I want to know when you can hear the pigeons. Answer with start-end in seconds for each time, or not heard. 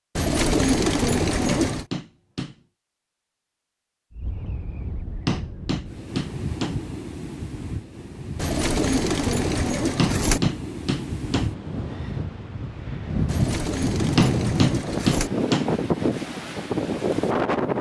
0.1-1.9, 8.3-10.4, 13.2-15.3.